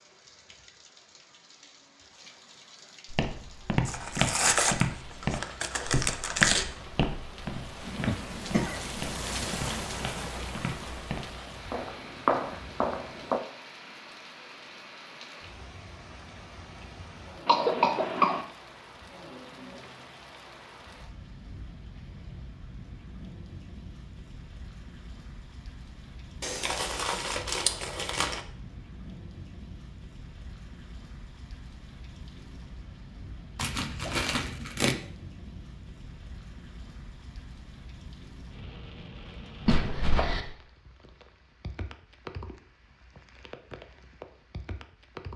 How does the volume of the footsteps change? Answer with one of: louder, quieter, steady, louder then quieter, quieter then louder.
quieter then louder.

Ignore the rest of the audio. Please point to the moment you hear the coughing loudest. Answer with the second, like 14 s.
18 s.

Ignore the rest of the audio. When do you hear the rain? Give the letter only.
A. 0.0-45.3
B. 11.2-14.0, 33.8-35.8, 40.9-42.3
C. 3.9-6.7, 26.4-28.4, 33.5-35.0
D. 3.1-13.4
A.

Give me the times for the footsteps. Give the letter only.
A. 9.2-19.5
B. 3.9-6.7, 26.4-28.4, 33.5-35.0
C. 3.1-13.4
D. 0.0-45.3
C.